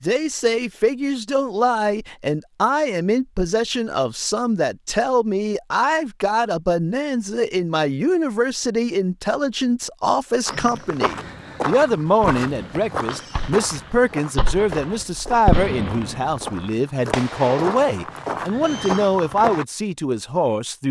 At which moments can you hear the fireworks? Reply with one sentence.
You can hear the fireworks from 11.1 to 19.0 s.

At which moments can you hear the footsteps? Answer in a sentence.
You can hear the footsteps from 10.4 to 19.6 s.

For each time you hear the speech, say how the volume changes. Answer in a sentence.
You can hear the speech from 0.0 to 20.8 s, at a steady volume.